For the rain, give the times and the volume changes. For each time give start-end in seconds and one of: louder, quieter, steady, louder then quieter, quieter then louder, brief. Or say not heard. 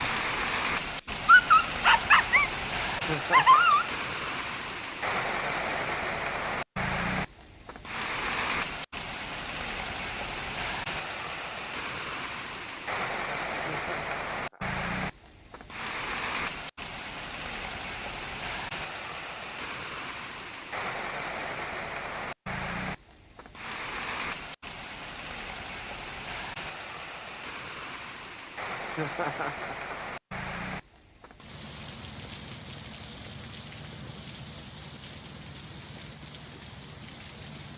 0.0-37.7 quieter.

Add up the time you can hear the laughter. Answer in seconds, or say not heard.
3 s.